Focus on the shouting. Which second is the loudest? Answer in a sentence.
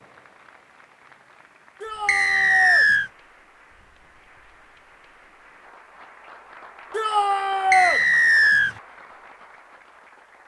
The loudest moment of the shouting is at 8 seconds.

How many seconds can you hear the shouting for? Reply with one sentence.
You can hear the shouting for 2 seconds altogether.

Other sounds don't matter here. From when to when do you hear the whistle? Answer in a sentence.
The whistle can be heard from 2.0 to 3.1 s and from 7.7 to 8.8 s.